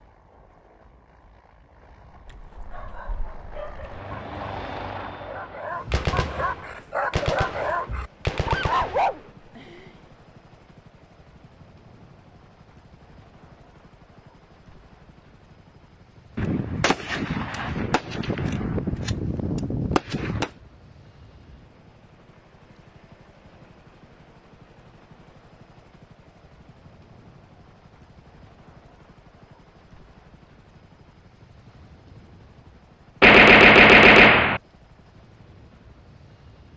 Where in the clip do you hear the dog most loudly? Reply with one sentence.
The volume of the dog peaks at 9 seconds.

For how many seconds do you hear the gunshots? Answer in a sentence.
The gunshots can be heard for 9 seconds in total.